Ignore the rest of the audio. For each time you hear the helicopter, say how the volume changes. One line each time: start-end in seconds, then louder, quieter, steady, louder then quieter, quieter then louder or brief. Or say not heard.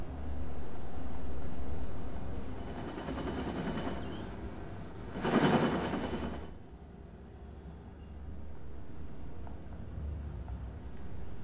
2.5-6.5 quieter then louder.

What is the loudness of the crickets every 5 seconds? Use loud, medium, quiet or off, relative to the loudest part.
loud, medium, loud.